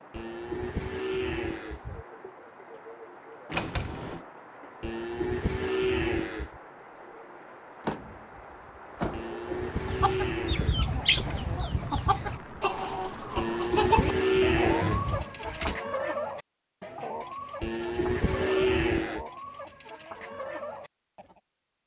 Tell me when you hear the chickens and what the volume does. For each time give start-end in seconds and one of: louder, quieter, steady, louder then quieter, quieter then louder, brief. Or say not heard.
9.8-21.4 quieter.